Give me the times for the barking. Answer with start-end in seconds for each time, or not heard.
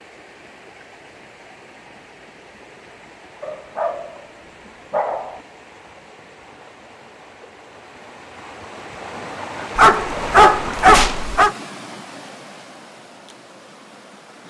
3.4-4.2, 4.9-5.4, 9.8-11.6.